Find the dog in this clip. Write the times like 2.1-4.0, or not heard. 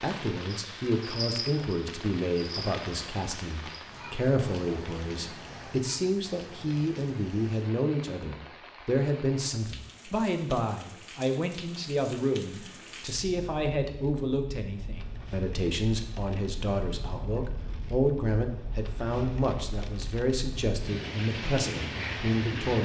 not heard.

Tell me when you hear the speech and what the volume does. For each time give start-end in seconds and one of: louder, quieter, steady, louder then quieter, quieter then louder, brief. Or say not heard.
0.0-22.8 steady.